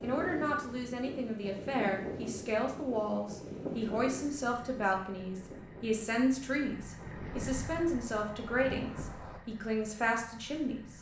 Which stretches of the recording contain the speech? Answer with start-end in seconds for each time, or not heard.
0.0-10.9.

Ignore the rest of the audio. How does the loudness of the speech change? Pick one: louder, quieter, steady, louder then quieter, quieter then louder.
steady.